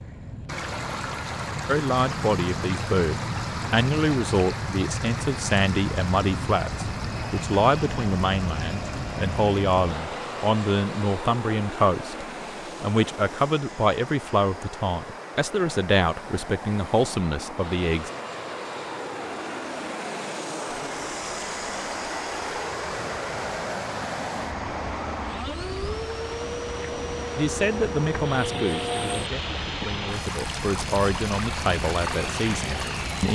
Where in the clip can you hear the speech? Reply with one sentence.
You can hear the speech from 1.6 to 18.1 s and from 27.4 to 33.2 s.